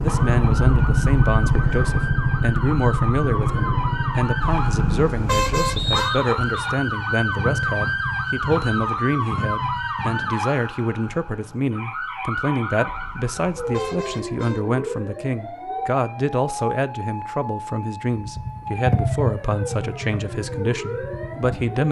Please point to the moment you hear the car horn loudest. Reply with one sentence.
The volume of the car horn peaks at 5 seconds.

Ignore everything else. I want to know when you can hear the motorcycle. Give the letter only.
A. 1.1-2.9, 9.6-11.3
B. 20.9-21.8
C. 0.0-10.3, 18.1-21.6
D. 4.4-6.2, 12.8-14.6
C.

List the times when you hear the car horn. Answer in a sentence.
You can hear the car horn from 4.4 to 6.2 s and from 12.8 to 14.6 s.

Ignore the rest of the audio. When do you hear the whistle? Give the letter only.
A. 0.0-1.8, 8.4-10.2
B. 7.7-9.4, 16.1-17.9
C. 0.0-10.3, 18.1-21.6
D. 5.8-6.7
D.